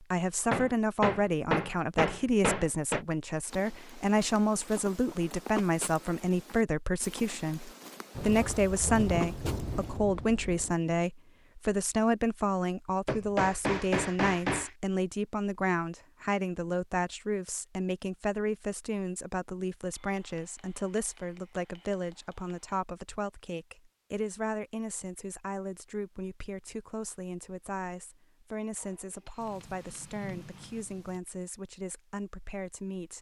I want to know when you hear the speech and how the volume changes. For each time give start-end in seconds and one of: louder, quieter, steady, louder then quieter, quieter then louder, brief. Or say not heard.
0.0-33.1 quieter.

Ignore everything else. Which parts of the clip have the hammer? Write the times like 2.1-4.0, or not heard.
0.5-3.0, 13.1-14.8, 19.9-22.8, 28.8-30.9.